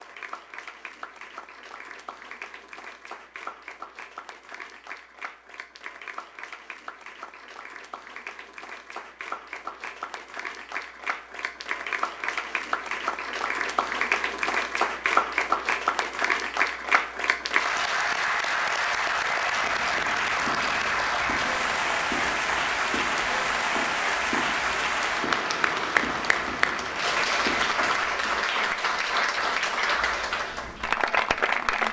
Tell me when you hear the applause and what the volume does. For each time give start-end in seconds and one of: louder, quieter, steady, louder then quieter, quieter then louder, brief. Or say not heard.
0.0-31.8 louder.